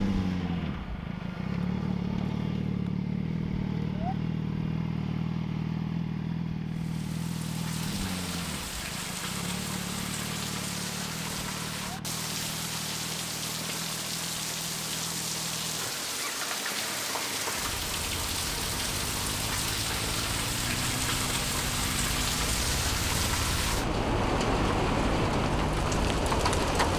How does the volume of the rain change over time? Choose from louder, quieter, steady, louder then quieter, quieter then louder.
louder.